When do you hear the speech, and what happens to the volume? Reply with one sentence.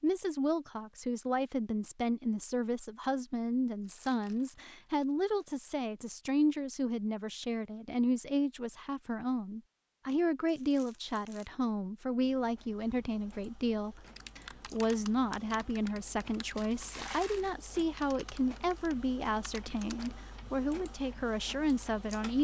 You can hear the speech from 0.0 to 22.3 s, at a steady volume.